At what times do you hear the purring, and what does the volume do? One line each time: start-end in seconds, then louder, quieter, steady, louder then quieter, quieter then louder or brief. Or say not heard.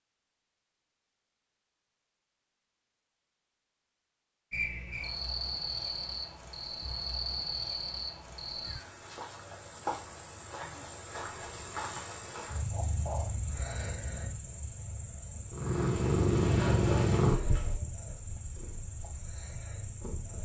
15.5-20.4 quieter.